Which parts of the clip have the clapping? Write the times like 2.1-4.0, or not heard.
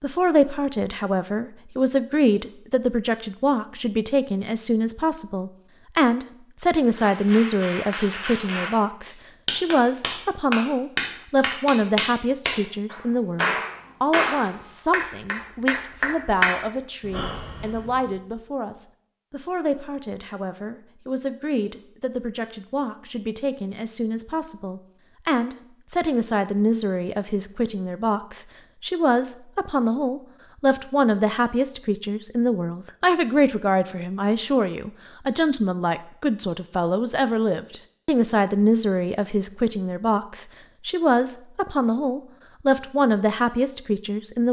6.9-18.1.